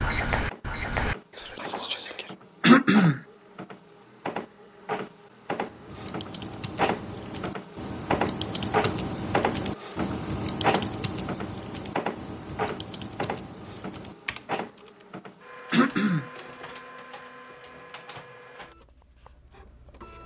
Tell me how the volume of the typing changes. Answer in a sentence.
The volume of the typing goes up, then down.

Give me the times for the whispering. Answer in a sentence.
You can hear the whispering from 0.0 to 2.3 s.